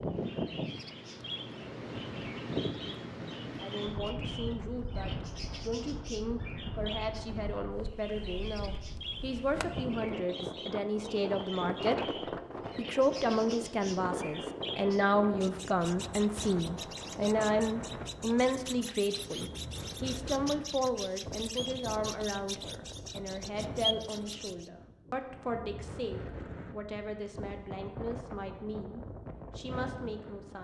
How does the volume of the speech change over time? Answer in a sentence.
The loudness of the speech goes up, then down.